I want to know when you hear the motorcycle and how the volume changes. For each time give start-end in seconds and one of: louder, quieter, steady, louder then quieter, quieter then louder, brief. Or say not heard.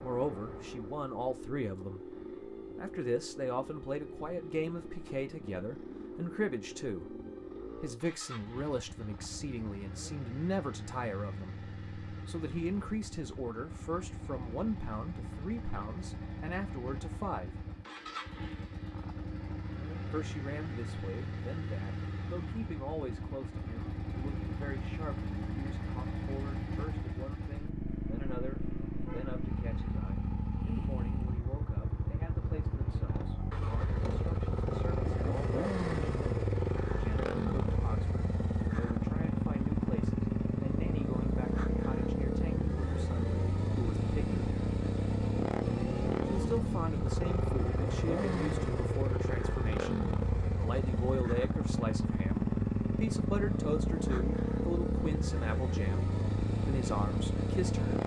0.0-58.0 louder.